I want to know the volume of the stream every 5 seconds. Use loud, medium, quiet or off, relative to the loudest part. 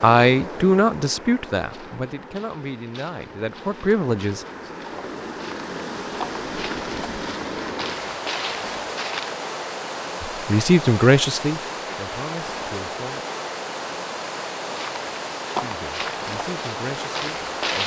medium, loud, loud, loud.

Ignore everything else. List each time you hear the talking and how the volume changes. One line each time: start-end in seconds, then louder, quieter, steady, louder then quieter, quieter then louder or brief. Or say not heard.
0.0-4.5 quieter then louder
10.4-13.2 brief
15.6-17.8 brief.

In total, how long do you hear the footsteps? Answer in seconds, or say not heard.
11 s.